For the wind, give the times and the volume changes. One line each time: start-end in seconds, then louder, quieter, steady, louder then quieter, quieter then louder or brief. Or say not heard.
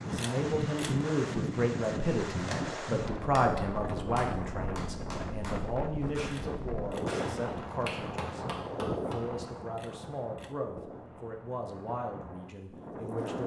0.0-13.4 quieter.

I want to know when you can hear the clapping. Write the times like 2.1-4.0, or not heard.
2.3-9.2.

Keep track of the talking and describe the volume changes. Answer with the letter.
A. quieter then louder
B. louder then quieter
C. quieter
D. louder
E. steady
C.